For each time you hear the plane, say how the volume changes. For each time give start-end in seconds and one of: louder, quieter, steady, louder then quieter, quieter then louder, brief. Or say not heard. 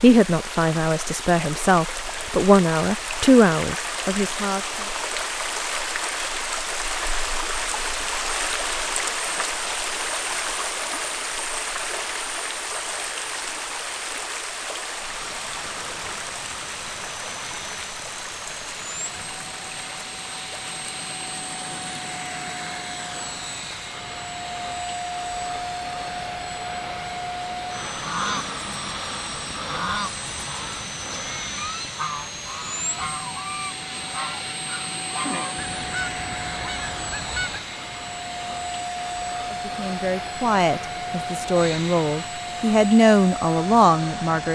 14.9-44.5 louder.